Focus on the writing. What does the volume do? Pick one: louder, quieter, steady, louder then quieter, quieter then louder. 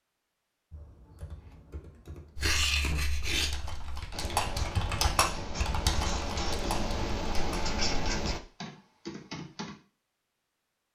quieter then louder.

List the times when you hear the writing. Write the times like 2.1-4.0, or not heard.
2.4-8.4.